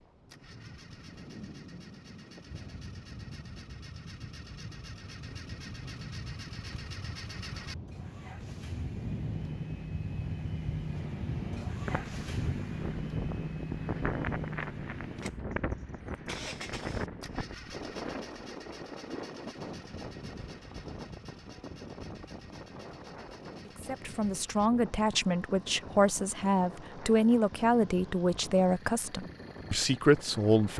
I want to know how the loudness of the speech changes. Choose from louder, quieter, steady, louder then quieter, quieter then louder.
steady.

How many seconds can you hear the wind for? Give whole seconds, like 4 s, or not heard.
31 s.